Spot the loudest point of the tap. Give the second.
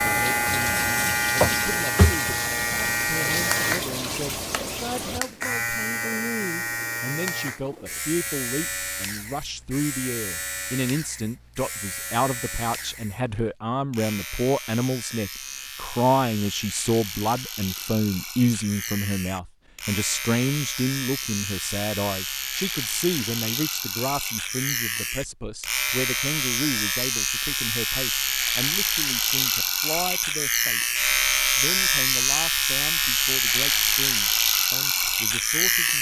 2 s.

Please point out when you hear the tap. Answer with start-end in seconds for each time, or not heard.
0.0-5.2.